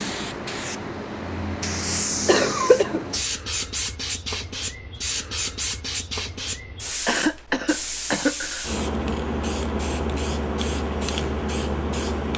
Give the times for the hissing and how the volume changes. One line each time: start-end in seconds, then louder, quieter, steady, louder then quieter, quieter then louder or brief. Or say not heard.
0.0-12.3 steady.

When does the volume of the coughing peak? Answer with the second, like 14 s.
3 s.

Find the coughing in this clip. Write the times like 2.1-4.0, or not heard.
2.2-3.0, 7.0-8.7.